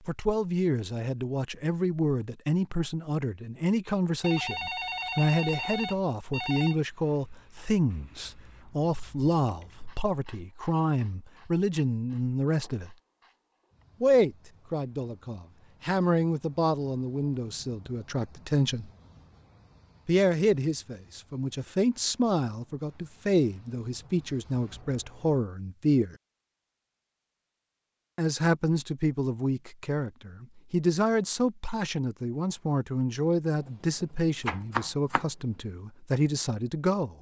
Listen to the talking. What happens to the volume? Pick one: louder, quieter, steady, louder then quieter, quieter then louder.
steady.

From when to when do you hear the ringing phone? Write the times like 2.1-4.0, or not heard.
4.2-6.8.